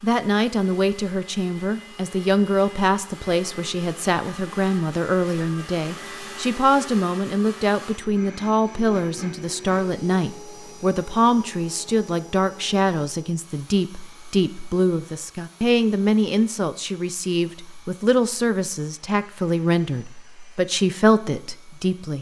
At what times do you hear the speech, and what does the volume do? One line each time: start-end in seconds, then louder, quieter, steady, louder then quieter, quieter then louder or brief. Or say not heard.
0.0-22.1 steady.